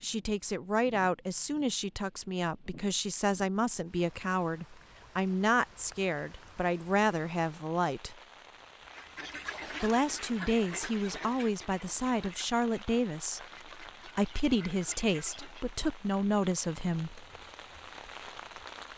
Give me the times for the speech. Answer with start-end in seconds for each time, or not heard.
0.0-8.2, 9.8-17.1.